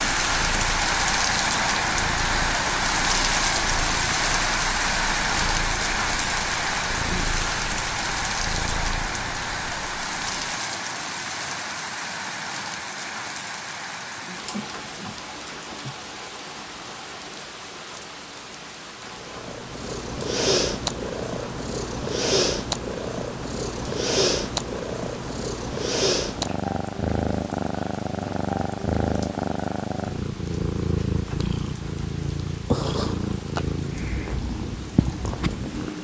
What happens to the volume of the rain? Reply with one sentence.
The loudness of the rain goes down.